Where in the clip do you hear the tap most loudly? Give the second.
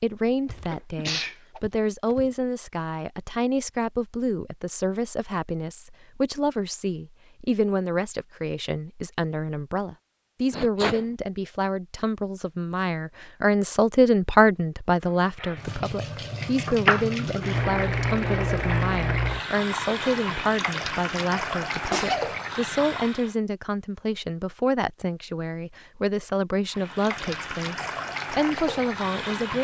17 s.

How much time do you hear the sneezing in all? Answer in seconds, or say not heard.
3 s.